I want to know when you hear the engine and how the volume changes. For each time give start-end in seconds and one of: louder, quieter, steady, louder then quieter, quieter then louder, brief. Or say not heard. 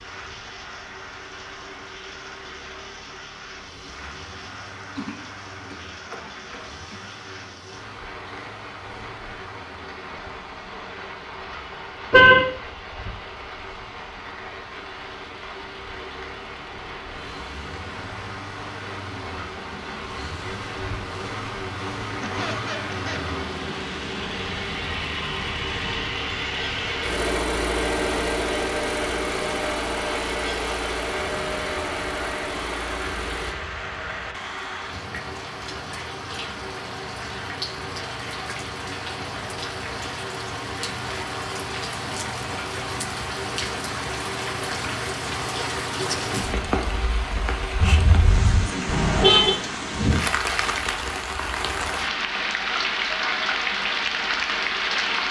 0.0-33.5 louder.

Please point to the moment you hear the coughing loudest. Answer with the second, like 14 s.
48 s.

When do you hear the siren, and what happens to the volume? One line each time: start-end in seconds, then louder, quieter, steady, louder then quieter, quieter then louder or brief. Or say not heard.
not heard.